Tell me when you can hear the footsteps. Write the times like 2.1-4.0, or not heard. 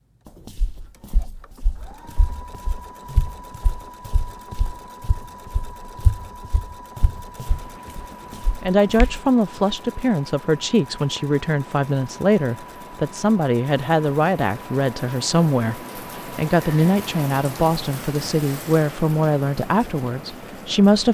0.5-9.2.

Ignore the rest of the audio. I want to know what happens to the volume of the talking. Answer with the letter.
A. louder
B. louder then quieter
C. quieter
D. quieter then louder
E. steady
E.